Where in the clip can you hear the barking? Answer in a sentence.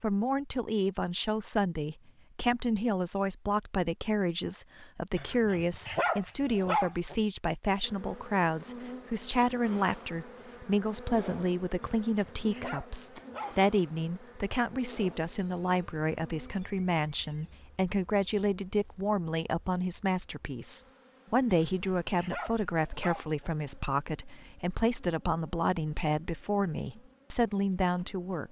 You can hear the barking from 5.2 to 7.2 s, from 11.9 to 13.6 s and from 21.5 to 23.5 s.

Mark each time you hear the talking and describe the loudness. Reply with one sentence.
You can hear the talking from 0.0 to 28.4 s, at a steady volume.